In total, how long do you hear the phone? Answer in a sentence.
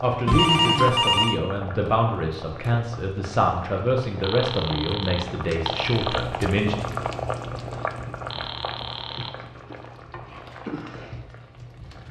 The phone can be heard for 5 seconds in total.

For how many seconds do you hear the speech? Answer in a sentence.
The speech can be heard for 7 seconds in total.